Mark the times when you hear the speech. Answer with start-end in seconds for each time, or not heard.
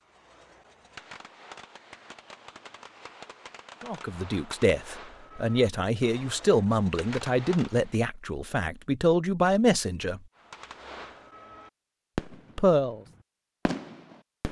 3.8-10.2, 12.6-13.0.